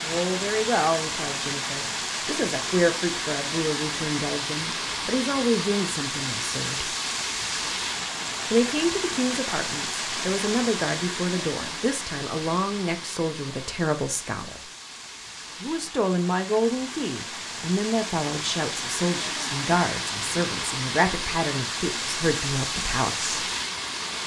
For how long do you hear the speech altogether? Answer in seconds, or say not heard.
21 s.